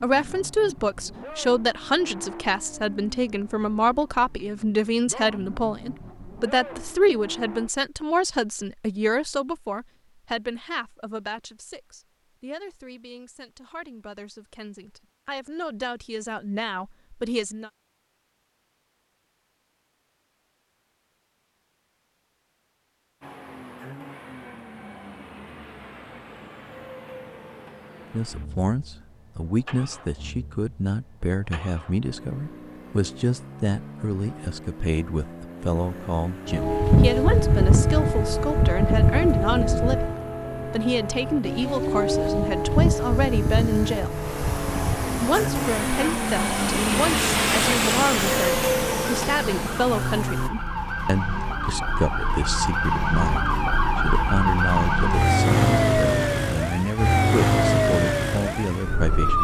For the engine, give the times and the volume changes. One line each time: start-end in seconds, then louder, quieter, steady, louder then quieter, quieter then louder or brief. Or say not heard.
0.0-7.7 quieter then louder
23.2-50.5 louder.